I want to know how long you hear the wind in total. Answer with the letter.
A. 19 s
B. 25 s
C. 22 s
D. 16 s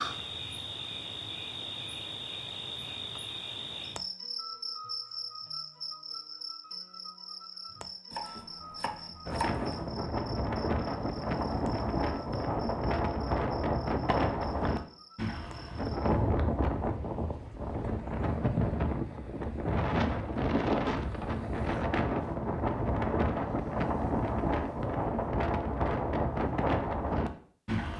A.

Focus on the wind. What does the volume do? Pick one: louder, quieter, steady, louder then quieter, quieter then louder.
steady.